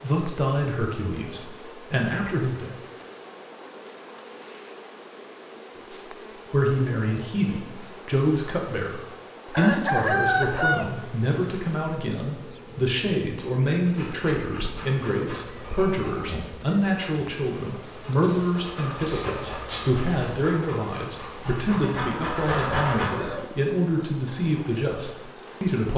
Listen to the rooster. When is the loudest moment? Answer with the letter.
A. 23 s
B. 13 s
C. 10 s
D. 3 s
C.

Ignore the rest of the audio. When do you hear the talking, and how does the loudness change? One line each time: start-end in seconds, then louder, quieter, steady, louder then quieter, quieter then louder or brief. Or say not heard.
0.0-2.8 brief
5.9-25.9 steady.